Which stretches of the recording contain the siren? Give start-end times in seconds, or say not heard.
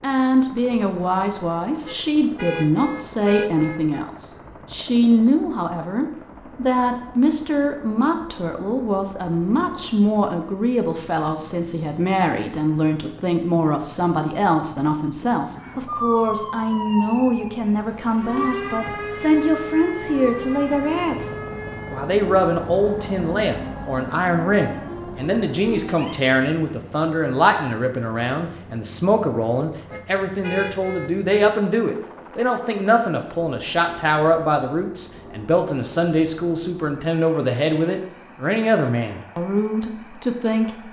15.8-26.1.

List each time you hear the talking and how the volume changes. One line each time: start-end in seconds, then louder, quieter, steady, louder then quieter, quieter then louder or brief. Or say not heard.
0.0-40.8 steady.